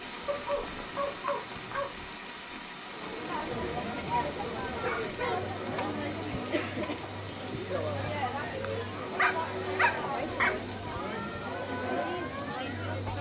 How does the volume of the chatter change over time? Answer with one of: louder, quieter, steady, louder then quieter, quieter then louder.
steady.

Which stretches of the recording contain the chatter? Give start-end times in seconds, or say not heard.
2.9-13.1.